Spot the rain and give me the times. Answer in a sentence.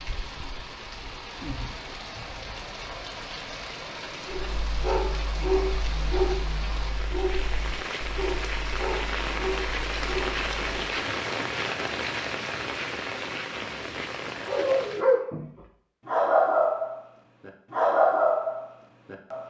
The rain can be heard from 0.0 to 15.1 s.